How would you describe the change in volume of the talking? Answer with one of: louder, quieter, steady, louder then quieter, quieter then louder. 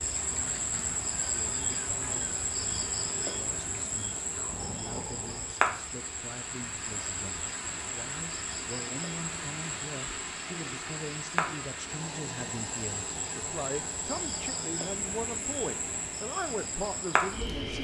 louder.